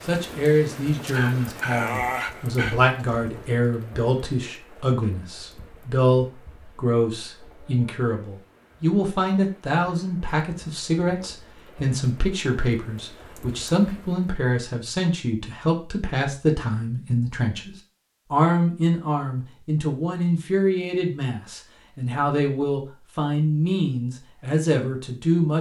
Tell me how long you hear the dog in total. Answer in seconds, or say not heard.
2 s.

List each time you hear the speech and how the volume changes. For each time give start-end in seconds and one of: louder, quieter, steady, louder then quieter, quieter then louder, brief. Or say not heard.
0.0-25.5 steady.